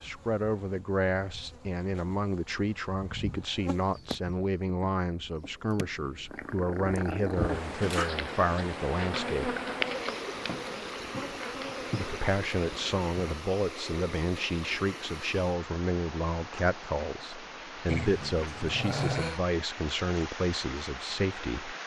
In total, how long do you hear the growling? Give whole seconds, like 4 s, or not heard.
3 s.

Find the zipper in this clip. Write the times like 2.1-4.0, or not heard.
not heard.